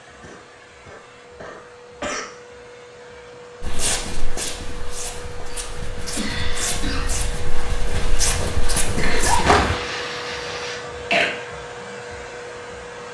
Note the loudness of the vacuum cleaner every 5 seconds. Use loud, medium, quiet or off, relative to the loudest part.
medium, loud, loud.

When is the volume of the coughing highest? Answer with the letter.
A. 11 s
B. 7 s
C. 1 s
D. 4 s
A.